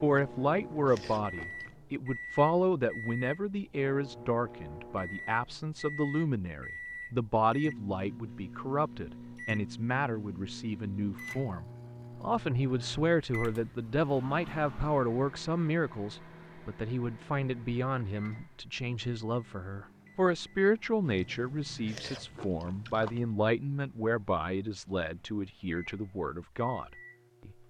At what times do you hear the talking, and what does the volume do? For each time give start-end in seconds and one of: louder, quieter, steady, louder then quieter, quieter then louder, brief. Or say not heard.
0.0-27.5 steady.